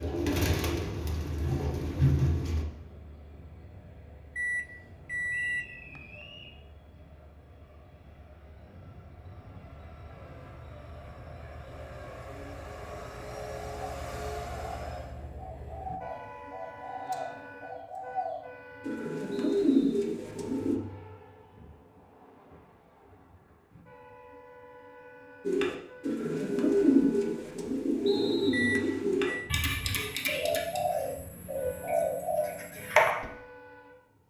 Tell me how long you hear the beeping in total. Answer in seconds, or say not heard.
3 s.